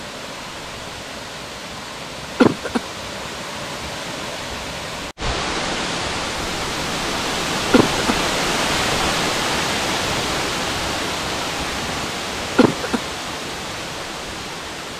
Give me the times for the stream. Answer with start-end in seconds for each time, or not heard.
0.0-14.9.